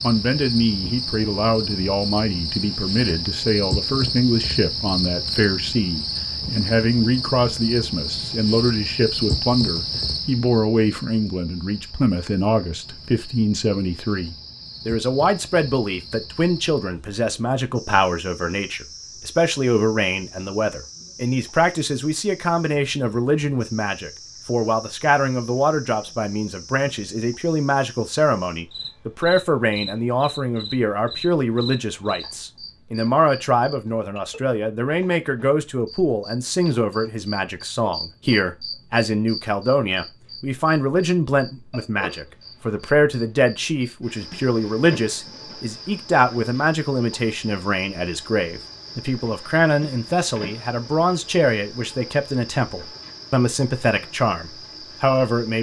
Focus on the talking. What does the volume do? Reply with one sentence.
The loudness of the talking stays about the same.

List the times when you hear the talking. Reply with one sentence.
The talking can be heard from 0.0 to 55.5 s.